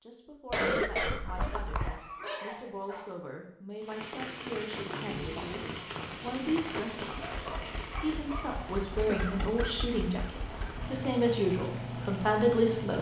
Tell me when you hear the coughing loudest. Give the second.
1 s.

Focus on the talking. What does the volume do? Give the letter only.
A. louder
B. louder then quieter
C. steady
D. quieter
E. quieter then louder
A.